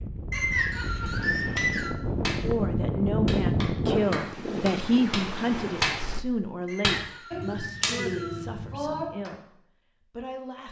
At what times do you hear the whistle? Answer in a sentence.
You can hear the whistle from 0.3 to 1.9 s and from 6.7 to 8.4 s.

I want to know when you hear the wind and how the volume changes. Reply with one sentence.
You can hear the wind from 0.0 to 6.2 s, getting louder then quieter.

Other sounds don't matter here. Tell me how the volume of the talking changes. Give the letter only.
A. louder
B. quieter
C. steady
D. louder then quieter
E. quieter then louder
B.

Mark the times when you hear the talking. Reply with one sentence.
You can hear the talking from 2.4 to 10.6 s.